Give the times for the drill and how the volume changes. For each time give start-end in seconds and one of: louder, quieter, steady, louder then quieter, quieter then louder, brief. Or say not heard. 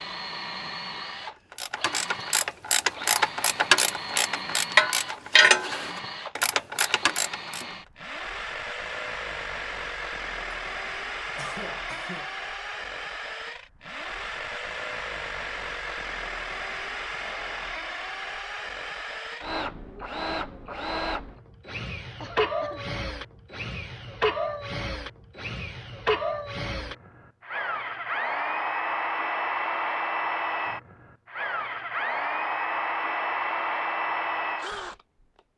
0.0-35.4 louder.